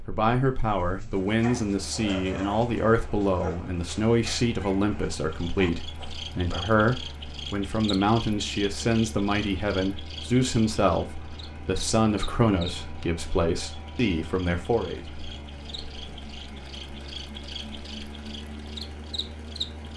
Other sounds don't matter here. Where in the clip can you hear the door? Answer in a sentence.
The door can't be heard in this clip.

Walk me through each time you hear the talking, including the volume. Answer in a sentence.
The talking can be heard from 0.1 to 15.1 s, at a steady volume.